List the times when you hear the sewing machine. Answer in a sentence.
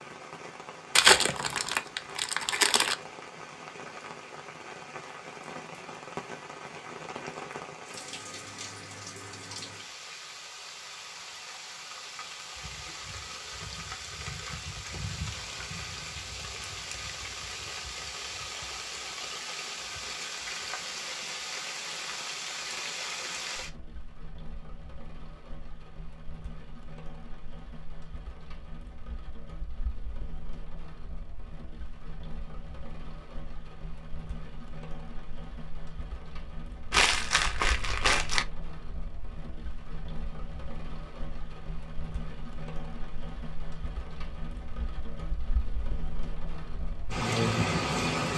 You can't hear the sewing machine here.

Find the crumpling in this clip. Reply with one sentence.
You can hear the crumpling from 0.9 to 3.0 s and from 36.9 to 38.5 s.